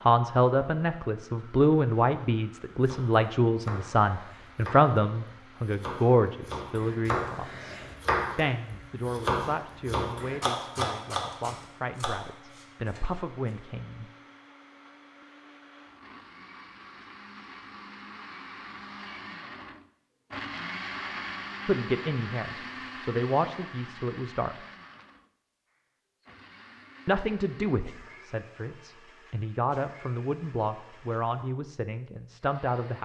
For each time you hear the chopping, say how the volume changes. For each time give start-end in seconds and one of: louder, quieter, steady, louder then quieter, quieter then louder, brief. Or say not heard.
2.8-13.6 louder then quieter.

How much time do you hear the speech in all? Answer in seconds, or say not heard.
23 s.